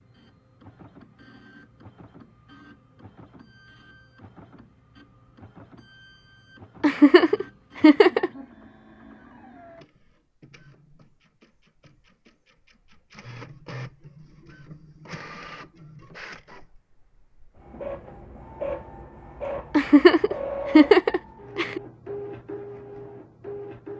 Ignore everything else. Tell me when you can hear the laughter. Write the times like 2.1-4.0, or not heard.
6.8-8.3, 19.8-21.8.